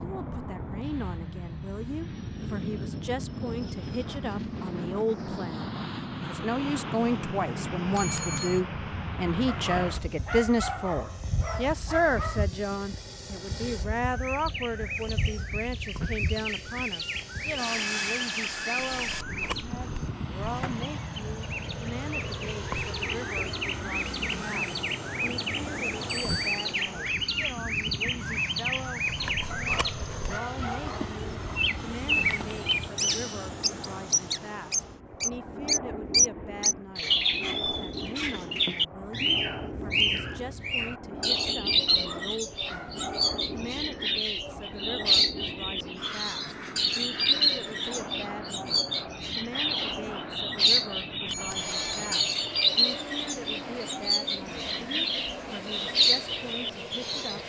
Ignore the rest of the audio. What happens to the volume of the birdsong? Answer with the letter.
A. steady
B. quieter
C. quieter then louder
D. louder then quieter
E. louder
E.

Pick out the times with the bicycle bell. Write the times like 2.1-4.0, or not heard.
7.9-8.6, 26.1-26.7, 51.2-52.1.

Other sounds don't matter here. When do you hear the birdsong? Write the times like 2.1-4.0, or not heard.
14.1-57.4.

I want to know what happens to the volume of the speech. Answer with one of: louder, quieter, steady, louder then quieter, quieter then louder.
quieter.